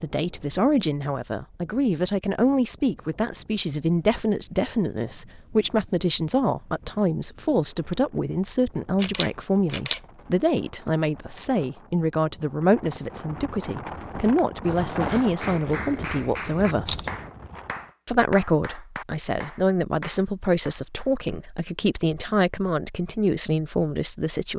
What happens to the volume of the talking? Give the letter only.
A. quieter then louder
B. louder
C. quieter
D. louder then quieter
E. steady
E.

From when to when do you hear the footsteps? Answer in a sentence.
You can't hear the footsteps here.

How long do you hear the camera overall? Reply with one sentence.
You can hear the camera for 2 seconds altogether.